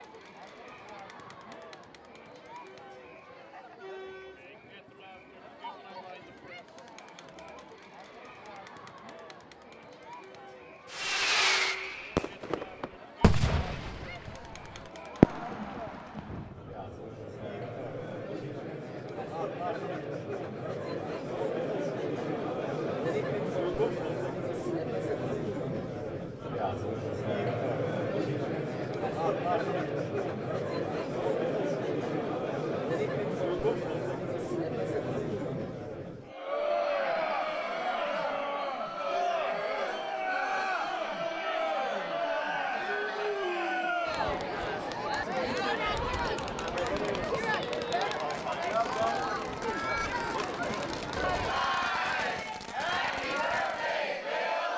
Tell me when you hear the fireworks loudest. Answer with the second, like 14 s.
15 s.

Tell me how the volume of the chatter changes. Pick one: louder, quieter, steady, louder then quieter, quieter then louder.
louder.